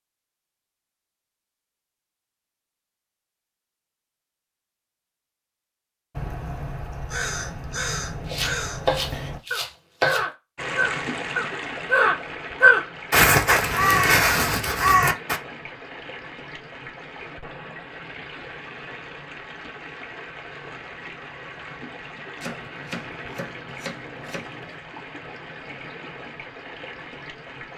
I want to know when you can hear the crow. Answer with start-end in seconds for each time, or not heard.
6.1-15.4.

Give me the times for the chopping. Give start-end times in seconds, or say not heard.
8.2-10.3, 22.4-24.8.